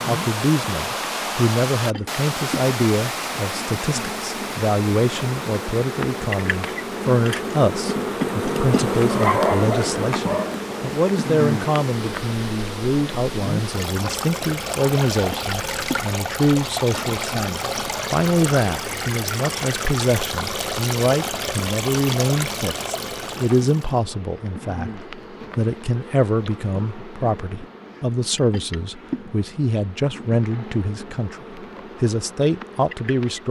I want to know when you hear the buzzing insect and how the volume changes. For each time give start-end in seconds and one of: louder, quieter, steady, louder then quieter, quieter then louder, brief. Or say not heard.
0.0-33.4 louder then quieter.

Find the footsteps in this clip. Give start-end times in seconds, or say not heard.
not heard.